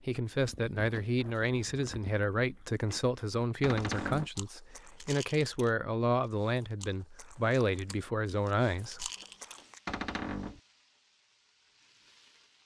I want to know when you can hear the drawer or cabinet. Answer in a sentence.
You can hear the drawer or cabinet from 3.6 to 4.3 s and from 9.8 to 10.6 s.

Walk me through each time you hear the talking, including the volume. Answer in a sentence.
You can hear the talking from 0.1 to 9.1 s, at a steady volume.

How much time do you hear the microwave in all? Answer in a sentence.
You can't hear the microwave here.